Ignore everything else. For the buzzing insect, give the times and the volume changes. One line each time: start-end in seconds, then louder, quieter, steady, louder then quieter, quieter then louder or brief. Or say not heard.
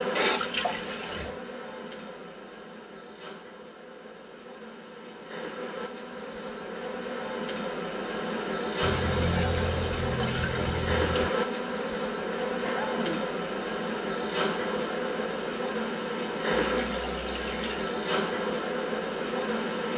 0.0-19.9 louder.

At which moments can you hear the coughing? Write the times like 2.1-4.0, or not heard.
12.6-13.3.